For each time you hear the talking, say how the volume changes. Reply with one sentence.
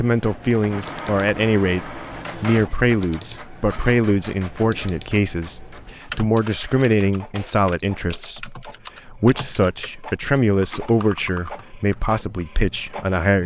The talking can be heard from 0.0 to 13.4 s, at a steady volume.